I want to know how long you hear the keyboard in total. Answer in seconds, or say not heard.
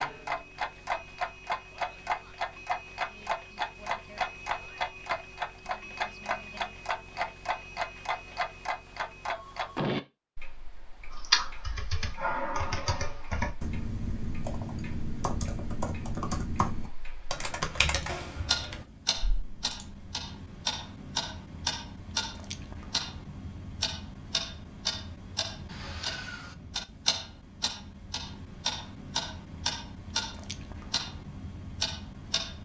9 s.